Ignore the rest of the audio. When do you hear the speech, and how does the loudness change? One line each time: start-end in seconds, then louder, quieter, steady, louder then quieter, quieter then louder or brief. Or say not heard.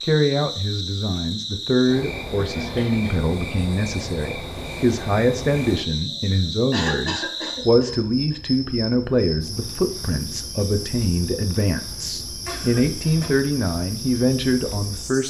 0.0-15.2 steady.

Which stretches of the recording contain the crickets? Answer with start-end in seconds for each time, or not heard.
0.0-15.2.